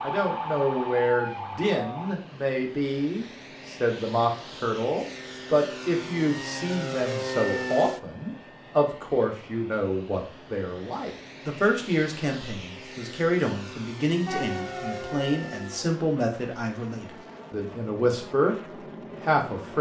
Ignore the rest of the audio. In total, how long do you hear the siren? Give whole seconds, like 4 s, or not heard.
4 s.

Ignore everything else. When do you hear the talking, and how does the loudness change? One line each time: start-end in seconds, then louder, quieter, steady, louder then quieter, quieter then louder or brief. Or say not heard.
0.0-19.7 steady.